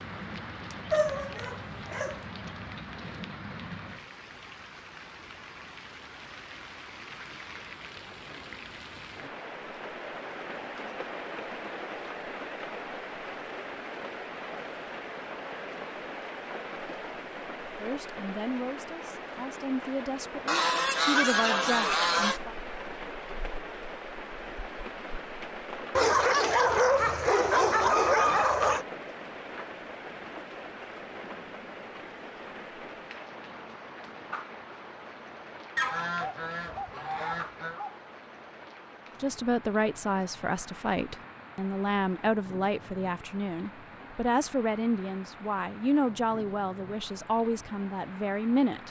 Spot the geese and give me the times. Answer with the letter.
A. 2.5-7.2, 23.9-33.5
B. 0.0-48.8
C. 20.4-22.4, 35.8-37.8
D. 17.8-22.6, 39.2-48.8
C.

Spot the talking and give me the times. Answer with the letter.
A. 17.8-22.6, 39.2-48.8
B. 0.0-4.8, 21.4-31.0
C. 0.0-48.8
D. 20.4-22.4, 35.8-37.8
A.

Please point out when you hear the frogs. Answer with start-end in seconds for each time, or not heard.
not heard.